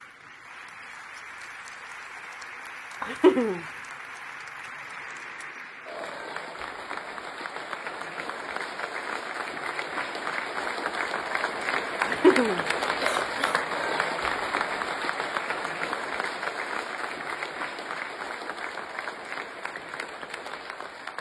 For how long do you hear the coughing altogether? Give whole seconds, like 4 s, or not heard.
2 s.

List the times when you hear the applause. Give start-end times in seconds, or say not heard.
0.0-21.1.